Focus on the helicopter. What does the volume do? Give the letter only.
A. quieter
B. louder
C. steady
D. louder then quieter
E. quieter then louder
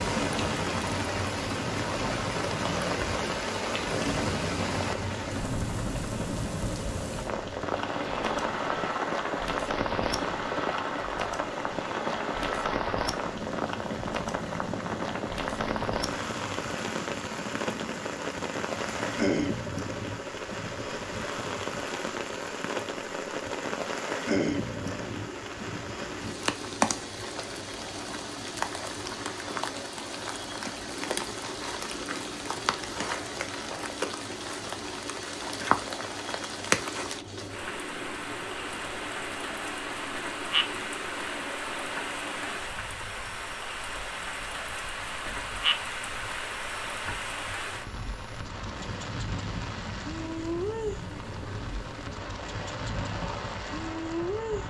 A.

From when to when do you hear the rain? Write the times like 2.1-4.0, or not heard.
0.0-54.6.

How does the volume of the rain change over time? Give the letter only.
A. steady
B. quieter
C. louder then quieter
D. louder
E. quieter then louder
A.